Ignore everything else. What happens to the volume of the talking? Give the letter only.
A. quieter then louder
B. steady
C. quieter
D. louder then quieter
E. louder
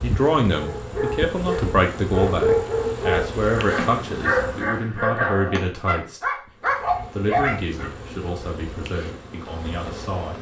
C.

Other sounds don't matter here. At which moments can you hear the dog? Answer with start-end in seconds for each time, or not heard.
0.6-7.9.